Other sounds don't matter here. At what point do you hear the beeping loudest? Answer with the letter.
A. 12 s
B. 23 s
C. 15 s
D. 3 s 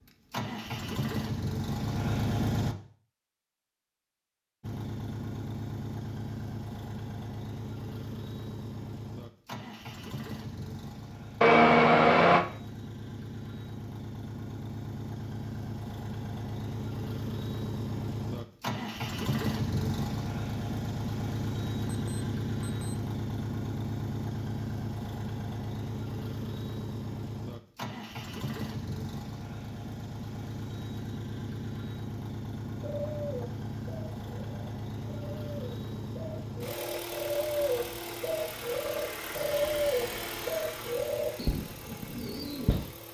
A.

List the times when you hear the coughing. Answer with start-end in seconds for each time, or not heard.
not heard.